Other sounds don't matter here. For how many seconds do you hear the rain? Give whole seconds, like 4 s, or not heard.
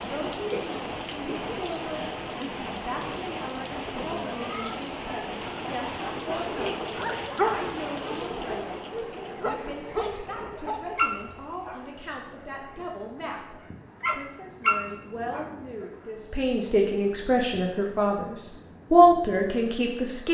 20 s.